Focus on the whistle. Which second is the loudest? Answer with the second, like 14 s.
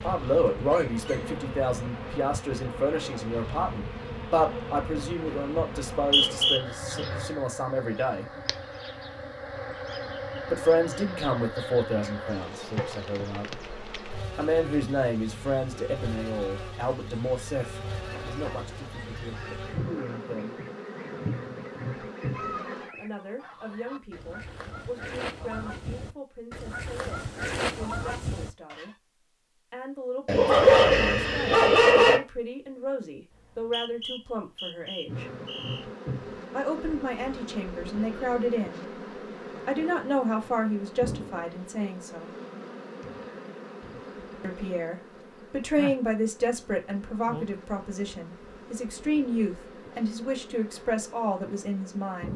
6 s.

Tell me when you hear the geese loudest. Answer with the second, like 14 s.
28 s.